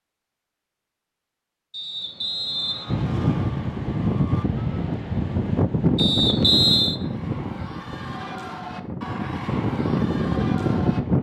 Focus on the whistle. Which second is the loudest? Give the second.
7 s.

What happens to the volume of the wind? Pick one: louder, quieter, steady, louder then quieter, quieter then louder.
quieter then louder.